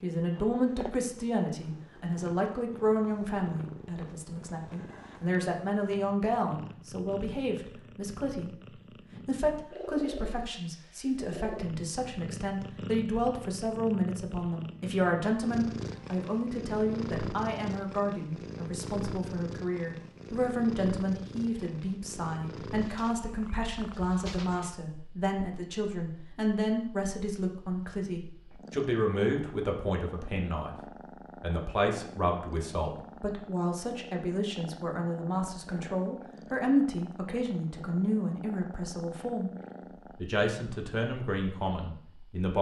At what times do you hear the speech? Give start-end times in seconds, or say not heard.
0.0-8.5, 9.2-30.8, 31.4-39.5, 40.1-42.5.